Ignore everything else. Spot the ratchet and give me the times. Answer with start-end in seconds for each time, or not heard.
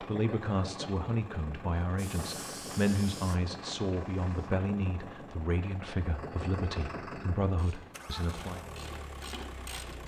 7.5-10.0.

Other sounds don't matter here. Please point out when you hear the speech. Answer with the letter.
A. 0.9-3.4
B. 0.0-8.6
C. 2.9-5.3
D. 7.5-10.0
B.